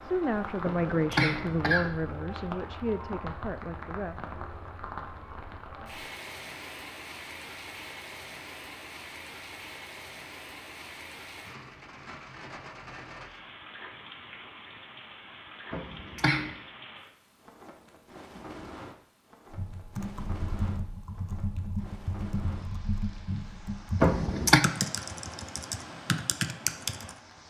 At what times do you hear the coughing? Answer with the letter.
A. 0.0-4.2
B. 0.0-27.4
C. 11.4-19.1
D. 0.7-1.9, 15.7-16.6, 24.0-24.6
D.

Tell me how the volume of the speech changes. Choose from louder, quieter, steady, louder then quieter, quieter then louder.
quieter.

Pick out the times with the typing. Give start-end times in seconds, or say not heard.
19.5-27.1.